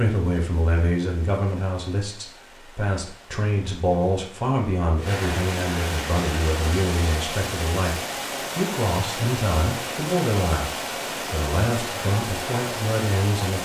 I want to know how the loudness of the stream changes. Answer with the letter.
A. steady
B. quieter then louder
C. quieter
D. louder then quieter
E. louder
E.